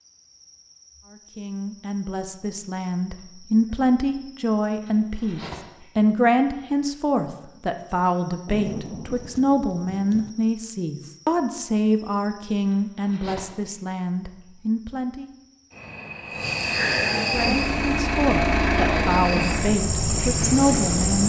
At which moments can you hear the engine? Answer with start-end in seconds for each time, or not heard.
17.3-21.2.